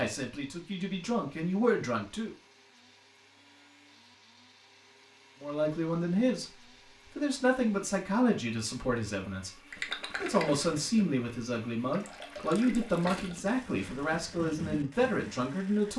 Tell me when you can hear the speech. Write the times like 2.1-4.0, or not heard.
0.0-2.3, 5.4-15.9.